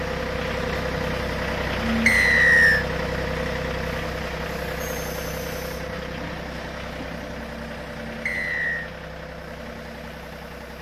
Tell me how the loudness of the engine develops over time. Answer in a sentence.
The volume of the engine goes down.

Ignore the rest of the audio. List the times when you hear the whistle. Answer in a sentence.
The whistle can be heard from 2.0 to 2.9 s and from 8.2 to 8.9 s.